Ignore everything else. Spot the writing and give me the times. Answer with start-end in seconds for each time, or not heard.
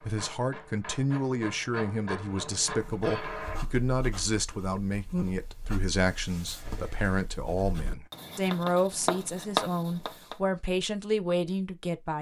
2.7-10.3.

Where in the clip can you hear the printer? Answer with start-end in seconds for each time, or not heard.
0.0-3.6.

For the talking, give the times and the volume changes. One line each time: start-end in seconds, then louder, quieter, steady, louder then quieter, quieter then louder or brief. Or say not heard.
0.1-12.1 steady.